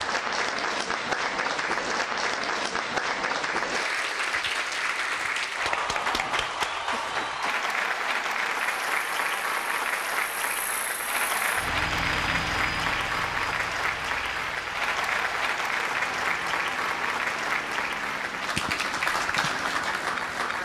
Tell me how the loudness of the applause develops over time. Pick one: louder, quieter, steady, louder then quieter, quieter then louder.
steady.